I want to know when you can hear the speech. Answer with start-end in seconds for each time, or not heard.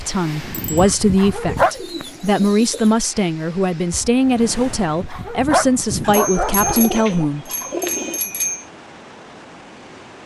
0.0-7.5.